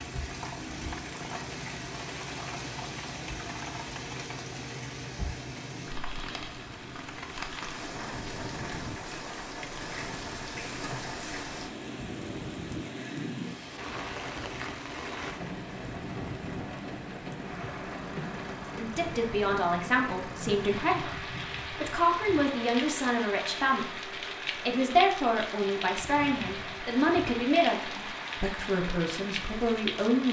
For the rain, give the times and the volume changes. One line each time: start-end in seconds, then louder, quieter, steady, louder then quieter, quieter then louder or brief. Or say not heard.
0.0-30.2 steady.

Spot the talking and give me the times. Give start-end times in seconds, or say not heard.
18.8-30.2.